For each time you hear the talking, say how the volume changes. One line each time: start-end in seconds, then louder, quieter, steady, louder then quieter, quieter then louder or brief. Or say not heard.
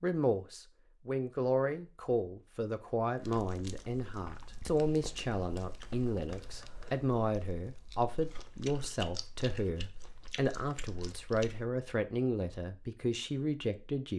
0.0-14.1 steady.